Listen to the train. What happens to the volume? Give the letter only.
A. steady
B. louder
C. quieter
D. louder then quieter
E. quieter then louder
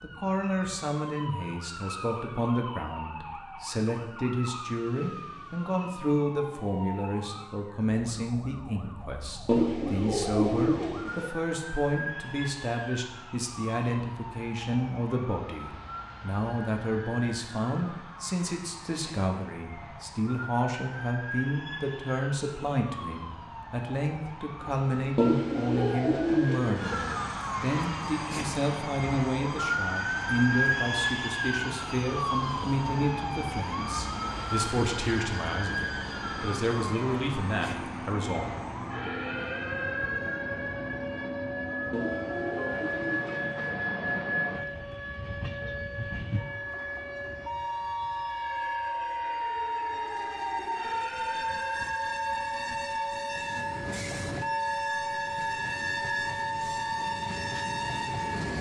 B.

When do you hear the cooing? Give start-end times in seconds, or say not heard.
9.4-11.3, 25.1-26.9, 41.9-43.7.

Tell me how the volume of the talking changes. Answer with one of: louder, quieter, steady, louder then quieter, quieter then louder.
steady.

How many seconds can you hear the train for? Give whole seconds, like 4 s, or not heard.
31 s.